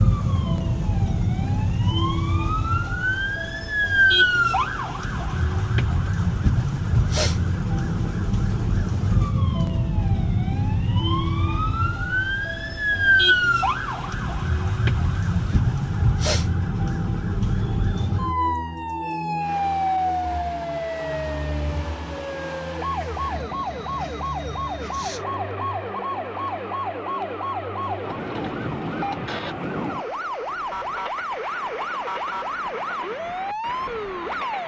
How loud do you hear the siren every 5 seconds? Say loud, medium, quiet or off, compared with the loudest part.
loud, loud, loud, loud, medium, medium, medium.